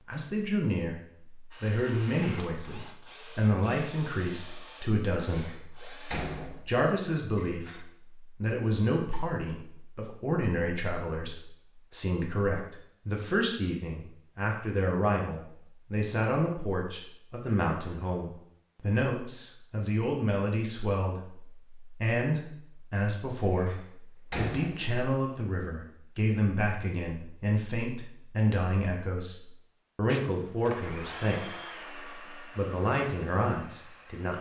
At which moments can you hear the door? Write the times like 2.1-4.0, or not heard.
5.3-7.8, 23.6-24.9.